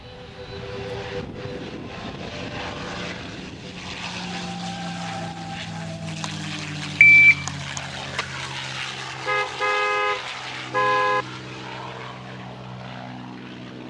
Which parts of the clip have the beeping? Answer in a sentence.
You can hear the beeping from 7.0 to 8.2 s.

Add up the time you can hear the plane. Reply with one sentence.
The plane can be heard for 14 seconds in total.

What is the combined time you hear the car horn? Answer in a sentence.
You can hear the car horn for 2 seconds altogether.